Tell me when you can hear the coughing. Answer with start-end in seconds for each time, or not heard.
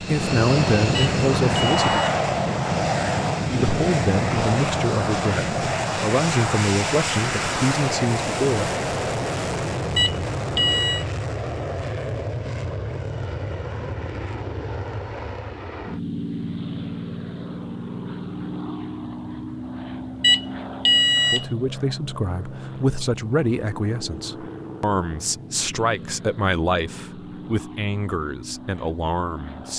not heard.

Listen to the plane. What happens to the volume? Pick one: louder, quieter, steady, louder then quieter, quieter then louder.
quieter.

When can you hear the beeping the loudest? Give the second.
21 s.